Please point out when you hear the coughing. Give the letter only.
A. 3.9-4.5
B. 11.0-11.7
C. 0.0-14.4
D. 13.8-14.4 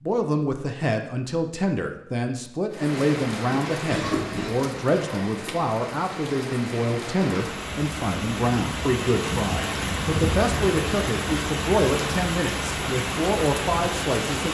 A.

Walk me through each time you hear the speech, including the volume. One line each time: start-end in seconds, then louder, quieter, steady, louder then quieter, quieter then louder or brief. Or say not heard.
0.0-14.4 steady.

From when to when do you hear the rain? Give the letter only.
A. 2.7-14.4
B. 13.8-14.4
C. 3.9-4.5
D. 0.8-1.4
A.